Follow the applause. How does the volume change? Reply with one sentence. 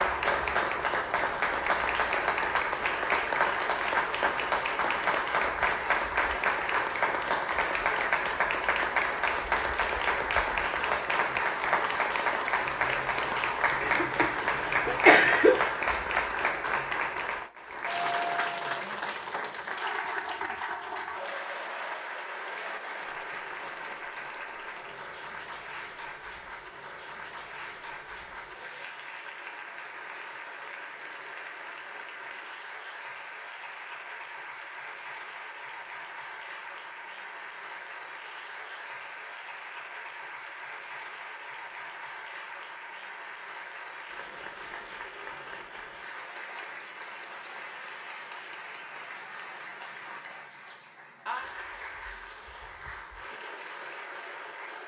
The loudness of the applause goes down.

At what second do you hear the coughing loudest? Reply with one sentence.
The loudest moment of the coughing is at 15 seconds.